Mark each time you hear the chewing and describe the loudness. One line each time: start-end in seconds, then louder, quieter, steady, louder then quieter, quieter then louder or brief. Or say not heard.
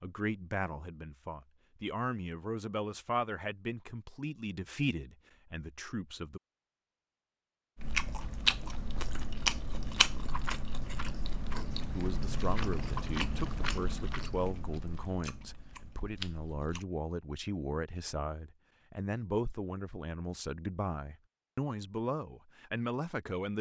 7.8-16.9 quieter.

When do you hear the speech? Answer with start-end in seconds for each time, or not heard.
0.0-6.4, 11.8-23.5.